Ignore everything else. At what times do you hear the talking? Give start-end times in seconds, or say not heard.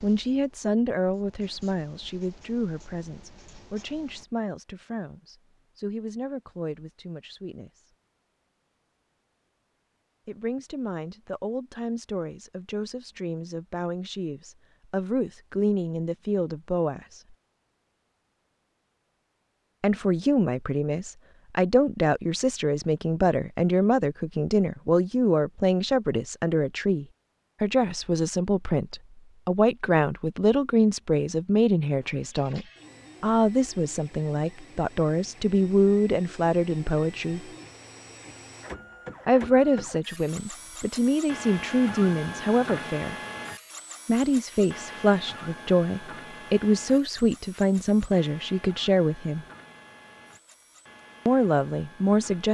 0.0-7.8, 10.2-17.2, 19.8-37.5, 39.2-43.1, 44.0-49.5, 51.2-52.4.